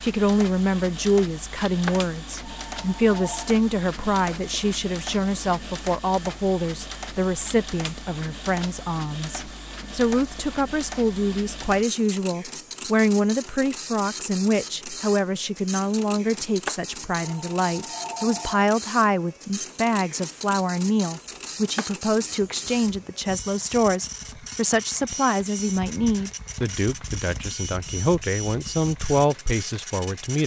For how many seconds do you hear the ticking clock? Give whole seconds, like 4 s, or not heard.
not heard.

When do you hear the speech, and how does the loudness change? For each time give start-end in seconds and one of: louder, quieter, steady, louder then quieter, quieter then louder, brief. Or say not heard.
0.0-30.4 steady.